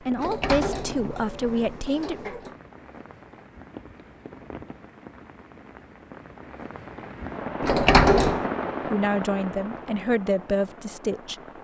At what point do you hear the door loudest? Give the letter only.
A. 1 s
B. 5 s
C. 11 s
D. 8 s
D.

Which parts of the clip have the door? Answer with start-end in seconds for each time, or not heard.
0.1-2.5, 7.6-8.4.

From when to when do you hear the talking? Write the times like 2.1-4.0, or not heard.
0.1-2.3, 8.8-11.3.